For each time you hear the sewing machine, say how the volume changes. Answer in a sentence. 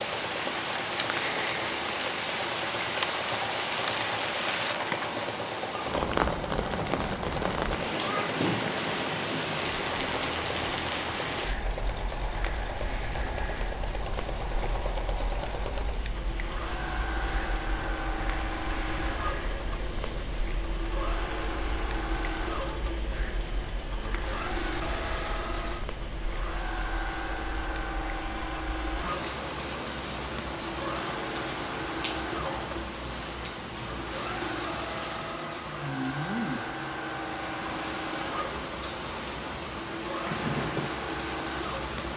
You can hear the sewing machine from 0.0 to 42.1 s, at a steady volume.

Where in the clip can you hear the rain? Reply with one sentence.
You can hear the rain from 0.0 to 42.1 s.